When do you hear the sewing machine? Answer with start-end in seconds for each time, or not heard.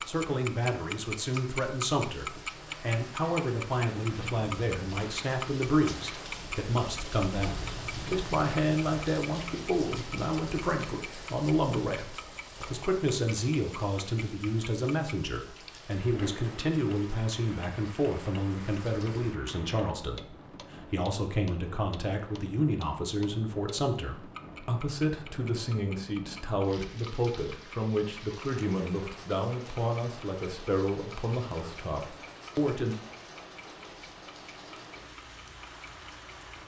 not heard.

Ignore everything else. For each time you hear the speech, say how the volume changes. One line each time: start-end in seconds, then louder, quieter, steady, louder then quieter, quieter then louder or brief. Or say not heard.
0.1-33.0 steady.